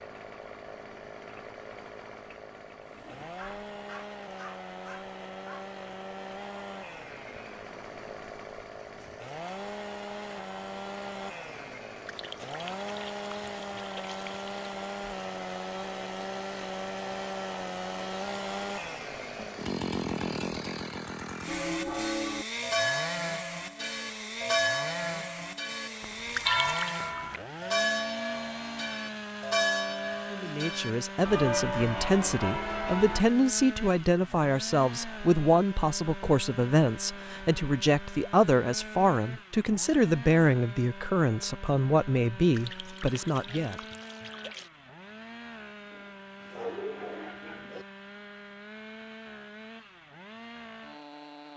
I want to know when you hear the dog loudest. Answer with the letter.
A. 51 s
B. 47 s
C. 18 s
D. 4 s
B.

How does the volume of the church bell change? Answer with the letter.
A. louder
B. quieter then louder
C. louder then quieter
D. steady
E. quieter
D.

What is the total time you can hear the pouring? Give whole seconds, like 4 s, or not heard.
5 s.